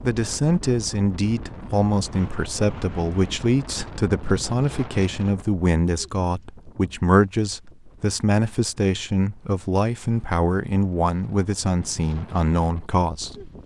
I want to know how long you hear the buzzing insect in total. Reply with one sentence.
You can't hear the buzzing insect here.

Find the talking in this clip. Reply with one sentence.
You can hear the talking from 0.0 to 13.5 s.